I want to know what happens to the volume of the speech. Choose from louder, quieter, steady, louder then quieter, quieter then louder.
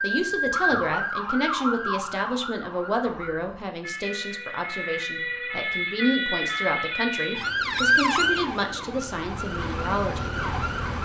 steady.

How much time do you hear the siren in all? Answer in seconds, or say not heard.
11 s.